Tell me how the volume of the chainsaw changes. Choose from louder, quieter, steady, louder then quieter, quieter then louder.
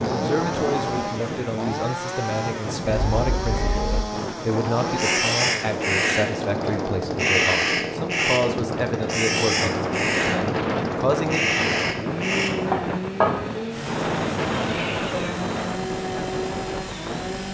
steady.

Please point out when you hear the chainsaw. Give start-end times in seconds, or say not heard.
0.0-17.4.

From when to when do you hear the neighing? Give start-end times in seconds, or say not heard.
14.5-15.3.